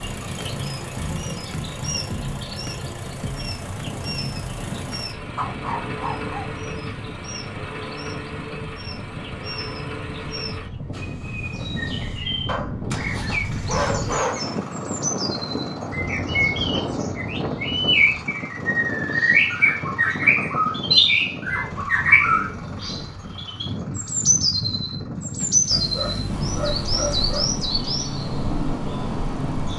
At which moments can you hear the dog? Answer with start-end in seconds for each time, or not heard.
5.3-6.5, 12.4-14.3, 25.7-27.6.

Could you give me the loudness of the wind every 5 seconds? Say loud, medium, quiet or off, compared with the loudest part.
medium, medium, loud, loud, loud, loud.